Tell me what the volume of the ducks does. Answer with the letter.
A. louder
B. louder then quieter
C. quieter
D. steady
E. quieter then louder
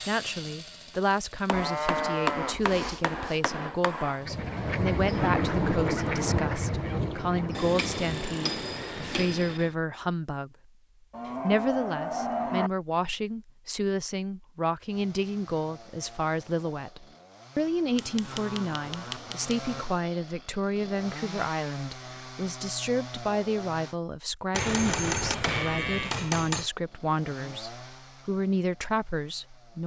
C.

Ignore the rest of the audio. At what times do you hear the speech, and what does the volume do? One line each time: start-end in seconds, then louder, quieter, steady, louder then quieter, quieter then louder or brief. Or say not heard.
0.1-10.5 steady
11.4-29.8 steady.